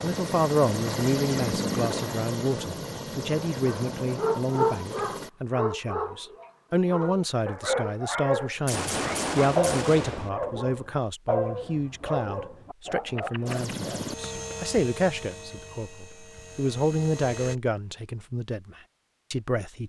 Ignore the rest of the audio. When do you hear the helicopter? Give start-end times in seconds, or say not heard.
0.0-5.3, 13.4-17.6.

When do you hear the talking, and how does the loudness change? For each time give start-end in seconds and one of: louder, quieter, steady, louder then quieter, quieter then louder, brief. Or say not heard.
0.0-19.8 steady.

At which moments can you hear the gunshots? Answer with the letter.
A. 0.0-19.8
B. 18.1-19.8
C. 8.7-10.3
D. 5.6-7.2
C.